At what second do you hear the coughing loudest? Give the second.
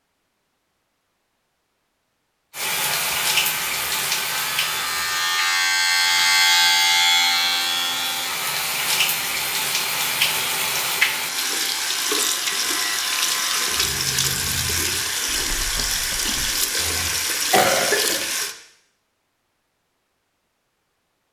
18 s.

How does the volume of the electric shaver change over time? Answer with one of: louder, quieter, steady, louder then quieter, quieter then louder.
louder then quieter.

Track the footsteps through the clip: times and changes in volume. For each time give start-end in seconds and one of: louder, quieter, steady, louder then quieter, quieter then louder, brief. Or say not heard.
not heard.